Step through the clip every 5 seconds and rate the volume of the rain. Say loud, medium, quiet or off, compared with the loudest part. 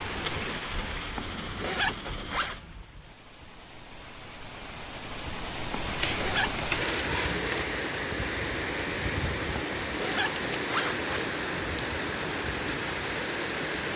medium, loud, loud.